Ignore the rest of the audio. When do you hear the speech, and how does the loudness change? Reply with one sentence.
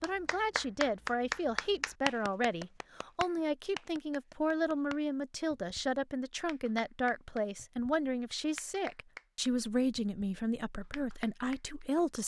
You can hear the speech from 0.0 to 12.2 s, at a steady volume.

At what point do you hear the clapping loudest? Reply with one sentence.
The loudest moment of the clapping is at 1 second.